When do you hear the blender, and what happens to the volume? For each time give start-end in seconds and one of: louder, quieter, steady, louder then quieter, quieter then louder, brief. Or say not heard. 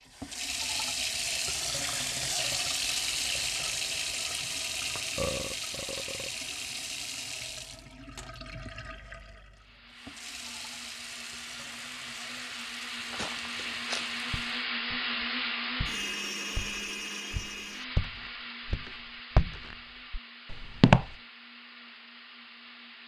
9.5-23.0 louder then quieter.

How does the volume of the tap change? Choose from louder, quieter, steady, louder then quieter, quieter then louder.
quieter.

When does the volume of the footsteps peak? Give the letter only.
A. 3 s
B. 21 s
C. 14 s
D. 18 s
B.